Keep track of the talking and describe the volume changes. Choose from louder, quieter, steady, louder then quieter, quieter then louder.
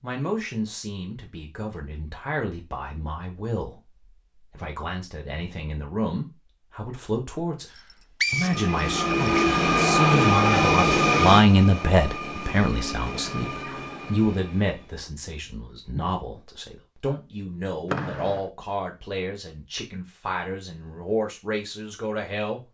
louder then quieter.